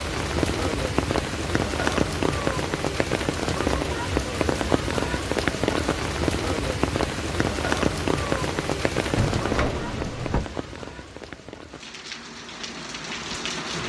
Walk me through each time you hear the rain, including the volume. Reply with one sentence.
You can hear the rain from 0.0 to 13.8 s, getting quieter.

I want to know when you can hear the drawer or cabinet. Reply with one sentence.
The drawer or cabinet can be heard from 9.2 to 10.4 s.